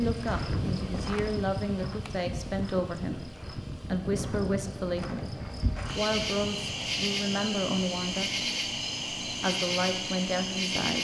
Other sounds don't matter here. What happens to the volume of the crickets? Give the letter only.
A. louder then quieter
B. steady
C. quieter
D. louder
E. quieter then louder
D.